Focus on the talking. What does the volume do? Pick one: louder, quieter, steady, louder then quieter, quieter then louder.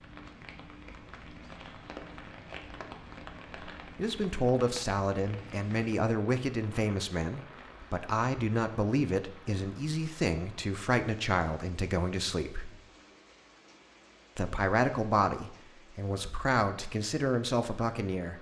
steady.